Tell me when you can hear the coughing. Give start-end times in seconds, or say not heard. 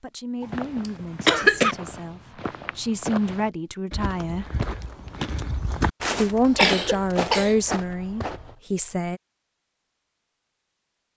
0.4-1.8, 6.0-7.5.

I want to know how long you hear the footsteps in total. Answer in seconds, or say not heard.
8 s.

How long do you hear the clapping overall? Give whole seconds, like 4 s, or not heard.
not heard.